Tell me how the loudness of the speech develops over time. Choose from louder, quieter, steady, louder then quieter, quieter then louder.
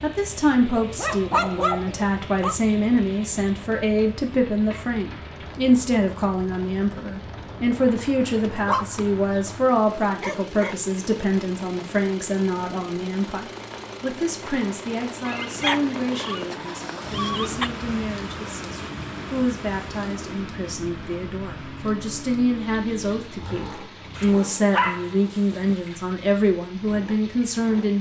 quieter then louder.